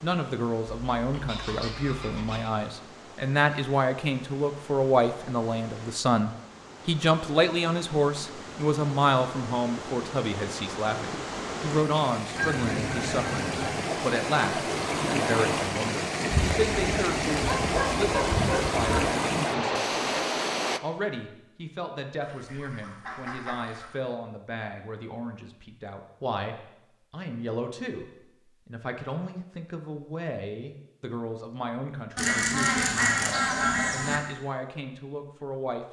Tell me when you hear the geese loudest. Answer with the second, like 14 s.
33 s.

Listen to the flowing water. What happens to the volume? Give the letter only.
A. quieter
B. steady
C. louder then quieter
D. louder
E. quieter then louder
D.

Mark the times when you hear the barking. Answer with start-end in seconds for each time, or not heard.
16.3-19.1.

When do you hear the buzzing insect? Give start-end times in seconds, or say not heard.
not heard.